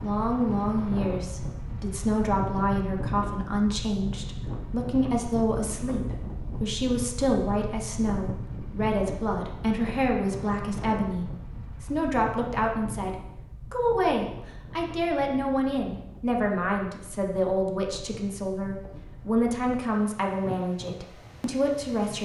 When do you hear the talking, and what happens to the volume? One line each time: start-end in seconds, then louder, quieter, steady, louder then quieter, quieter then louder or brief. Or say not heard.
0.0-22.2 steady.